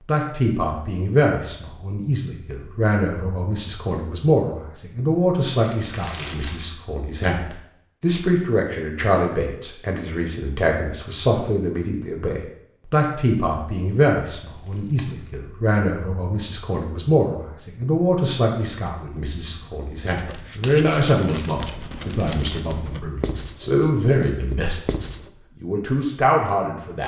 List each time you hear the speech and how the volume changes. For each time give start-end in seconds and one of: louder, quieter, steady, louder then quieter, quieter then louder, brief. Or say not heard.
0.1-24.9 steady
25.6-27.0 brief.